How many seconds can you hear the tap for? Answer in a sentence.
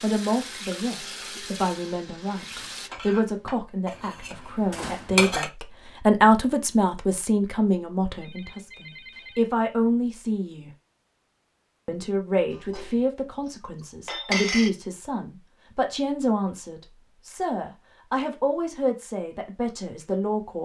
You can hear the tap for 3 seconds altogether.